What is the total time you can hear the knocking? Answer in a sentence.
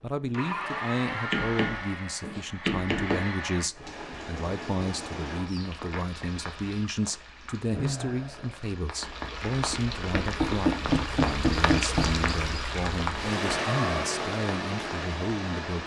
The knocking can be heard for 4 seconds in total.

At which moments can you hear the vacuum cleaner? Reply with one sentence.
The vacuum cleaner can be heard from 0.2 to 3.7 s and from 13.3 to 15.8 s.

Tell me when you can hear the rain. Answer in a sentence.
You can hear the rain from 3.7 to 15.8 s.